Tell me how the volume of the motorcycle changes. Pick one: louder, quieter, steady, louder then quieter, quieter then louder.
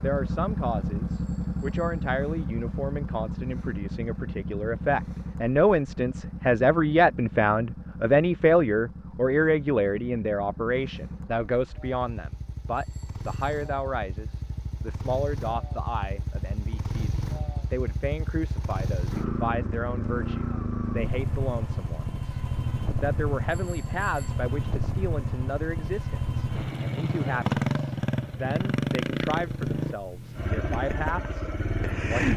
quieter then louder.